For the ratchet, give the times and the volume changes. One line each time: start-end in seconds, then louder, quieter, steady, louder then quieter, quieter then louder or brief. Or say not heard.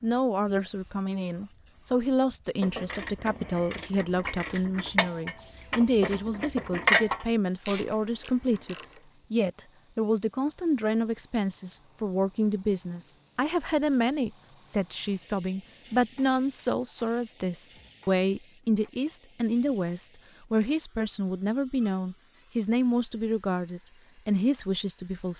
2.6-8.8 louder then quieter.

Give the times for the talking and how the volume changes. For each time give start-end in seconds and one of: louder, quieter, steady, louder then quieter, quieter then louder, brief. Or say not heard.
0.0-25.3 steady.